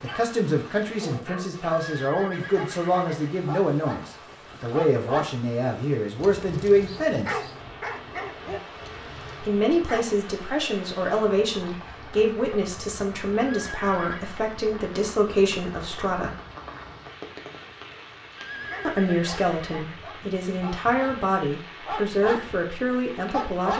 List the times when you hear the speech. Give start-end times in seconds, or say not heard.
0.0-7.4, 9.4-16.4, 18.9-23.7.